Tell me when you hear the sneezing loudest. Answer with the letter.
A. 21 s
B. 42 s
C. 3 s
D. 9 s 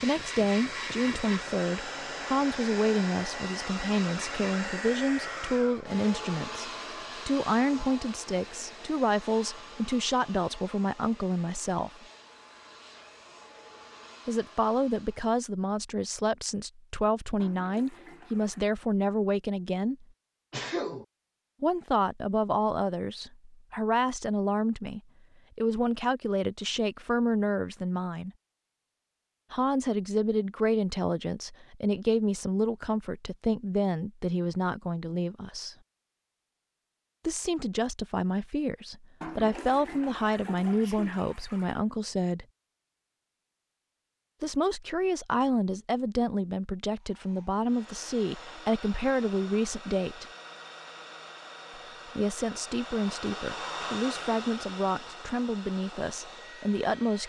A.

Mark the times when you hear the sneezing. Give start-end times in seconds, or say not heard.
20.5-21.1, 40.6-41.2.